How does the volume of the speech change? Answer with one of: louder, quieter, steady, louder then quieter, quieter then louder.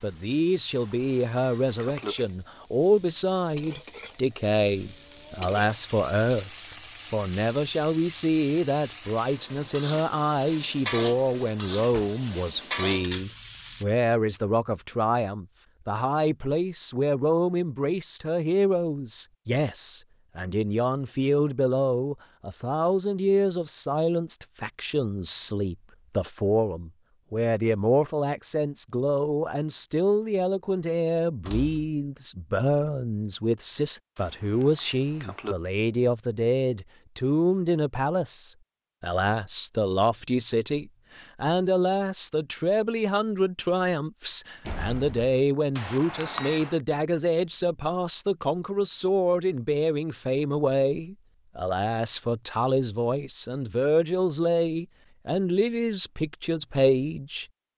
steady.